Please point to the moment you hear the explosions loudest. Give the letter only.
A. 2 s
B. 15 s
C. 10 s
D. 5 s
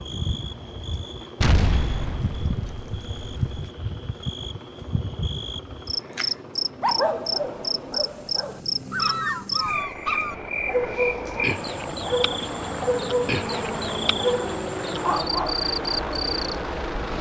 A.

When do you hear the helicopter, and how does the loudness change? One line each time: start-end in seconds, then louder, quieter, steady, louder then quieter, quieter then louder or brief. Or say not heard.
0.0-17.1 louder.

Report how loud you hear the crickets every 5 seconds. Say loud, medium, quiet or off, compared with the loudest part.
medium, loud, loud, loud.